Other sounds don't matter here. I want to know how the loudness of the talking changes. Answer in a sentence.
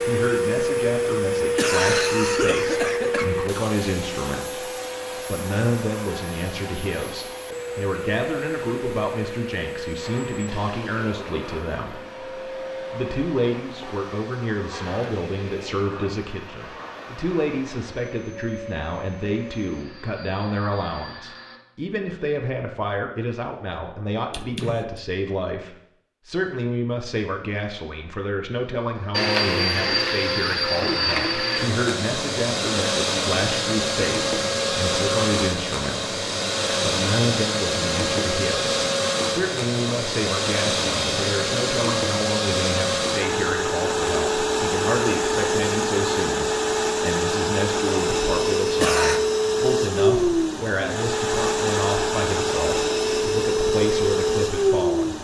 The loudness of the talking stays about the same.